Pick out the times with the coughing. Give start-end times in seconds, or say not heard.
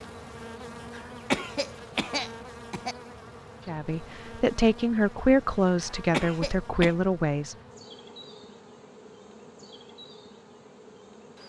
0.9-3.0, 5.8-7.0.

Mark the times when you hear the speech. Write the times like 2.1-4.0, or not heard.
3.6-7.5.